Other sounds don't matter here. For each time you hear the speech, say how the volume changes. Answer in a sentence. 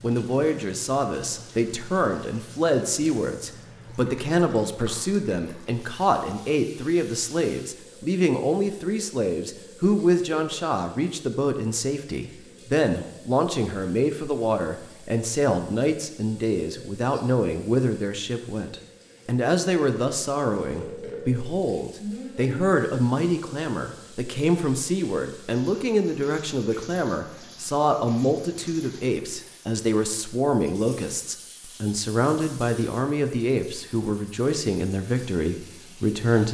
The speech can be heard from 0.0 to 36.4 s, at a steady volume.